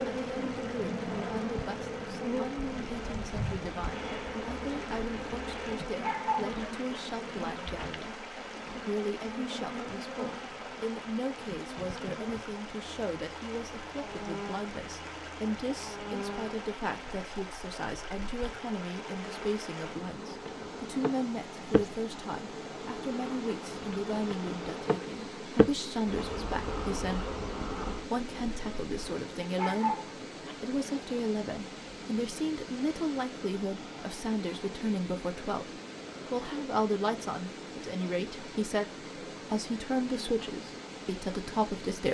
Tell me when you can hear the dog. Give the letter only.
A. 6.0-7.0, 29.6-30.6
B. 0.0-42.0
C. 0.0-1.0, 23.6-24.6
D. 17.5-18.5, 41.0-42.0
A.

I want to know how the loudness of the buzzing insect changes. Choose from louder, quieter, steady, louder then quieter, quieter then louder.
quieter then louder.